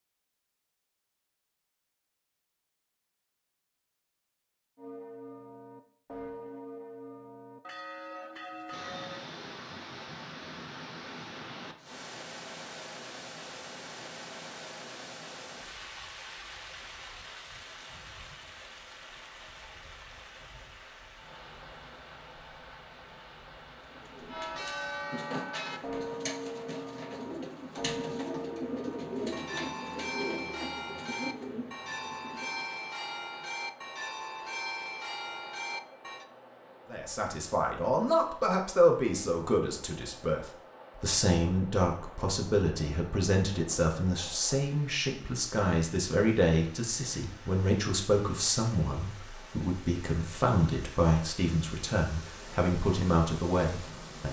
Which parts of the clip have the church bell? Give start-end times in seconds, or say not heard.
4.8-9.2, 24.2-36.2.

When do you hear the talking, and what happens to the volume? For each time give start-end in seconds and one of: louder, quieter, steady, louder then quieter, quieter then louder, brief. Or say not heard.
36.9-54.2 steady.